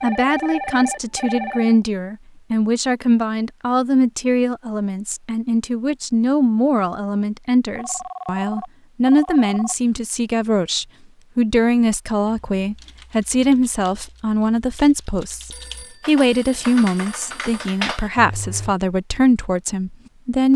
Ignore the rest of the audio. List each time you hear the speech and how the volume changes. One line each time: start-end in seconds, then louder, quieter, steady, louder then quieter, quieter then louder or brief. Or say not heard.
0.0-20.5 steady.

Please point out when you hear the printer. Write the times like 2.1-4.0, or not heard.
not heard.